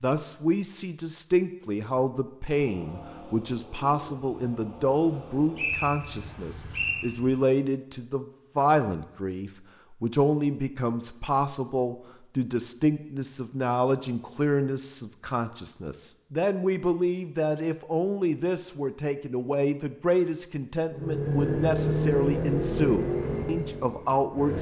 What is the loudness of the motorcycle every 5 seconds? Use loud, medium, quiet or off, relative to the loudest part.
quiet, quiet, off, off, loud.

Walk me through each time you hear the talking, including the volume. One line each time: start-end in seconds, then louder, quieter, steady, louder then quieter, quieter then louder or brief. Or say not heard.
0.0-24.5 steady.